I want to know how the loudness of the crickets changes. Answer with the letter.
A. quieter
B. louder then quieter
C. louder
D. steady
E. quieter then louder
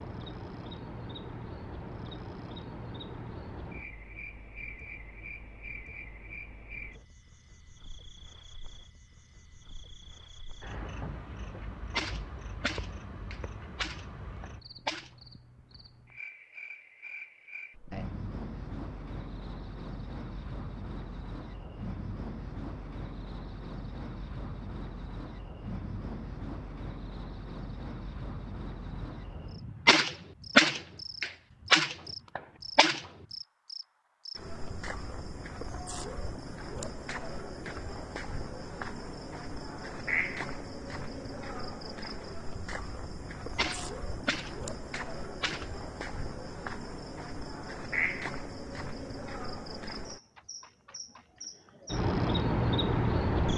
C.